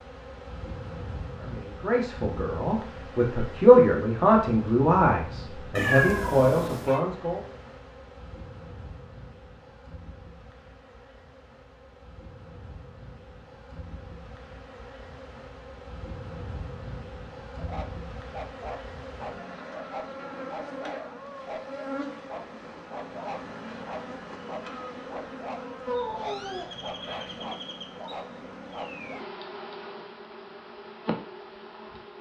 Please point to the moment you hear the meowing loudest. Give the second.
6 s.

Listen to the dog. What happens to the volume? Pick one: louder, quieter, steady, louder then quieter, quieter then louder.
steady.